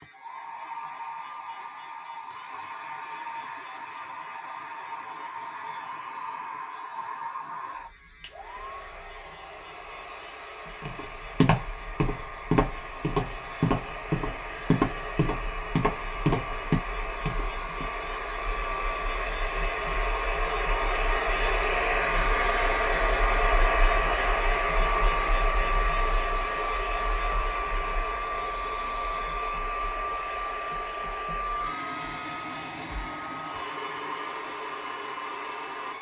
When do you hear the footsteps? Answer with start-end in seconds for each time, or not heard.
10.8-17.9.